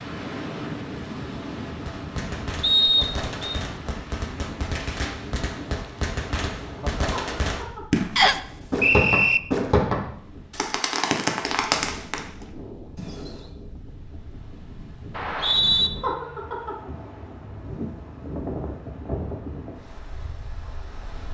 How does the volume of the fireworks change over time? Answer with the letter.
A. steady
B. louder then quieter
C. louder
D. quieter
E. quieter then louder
C.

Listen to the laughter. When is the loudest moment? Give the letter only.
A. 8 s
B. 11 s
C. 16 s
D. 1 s
C.